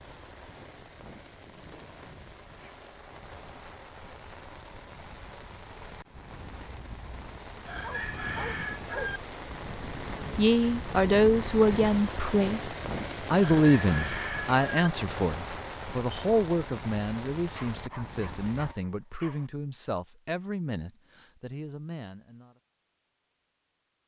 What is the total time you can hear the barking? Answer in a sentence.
The barking can be heard for 3 seconds in total.